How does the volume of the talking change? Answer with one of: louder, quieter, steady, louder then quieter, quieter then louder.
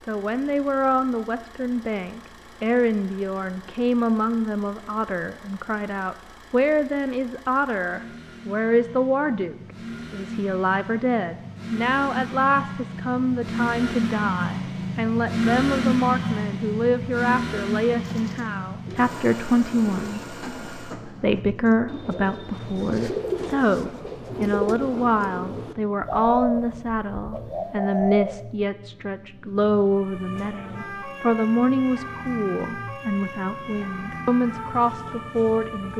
steady.